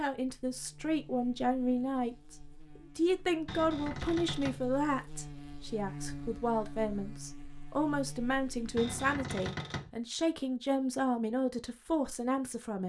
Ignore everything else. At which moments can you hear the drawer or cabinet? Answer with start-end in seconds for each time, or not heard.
3.5-4.7, 8.8-9.9.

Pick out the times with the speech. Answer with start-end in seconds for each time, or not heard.
0.0-2.4, 3.0-12.8.